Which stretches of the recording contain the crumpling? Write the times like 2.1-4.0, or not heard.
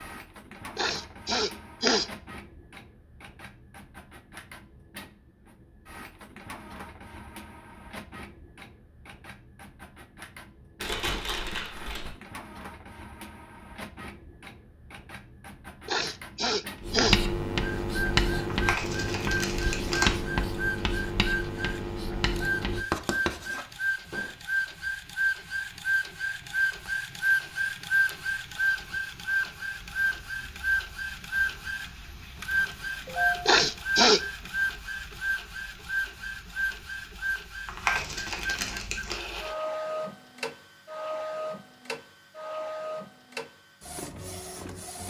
10.8-12.2, 18.5-20.2, 37.6-39.1.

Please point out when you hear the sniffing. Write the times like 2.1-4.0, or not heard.
0.8-2.0, 15.8-17.2, 33.5-34.2.